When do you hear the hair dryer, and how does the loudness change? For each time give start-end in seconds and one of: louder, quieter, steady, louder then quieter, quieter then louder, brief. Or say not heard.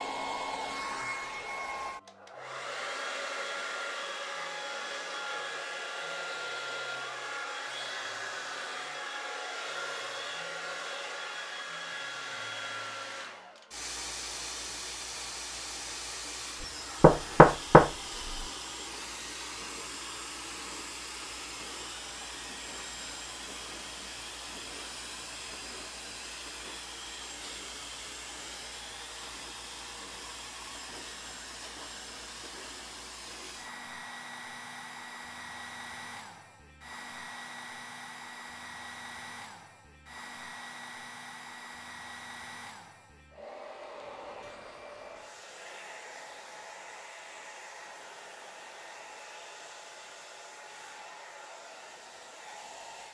0.0-53.1 quieter.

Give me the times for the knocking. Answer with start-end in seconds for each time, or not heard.
17.0-18.4.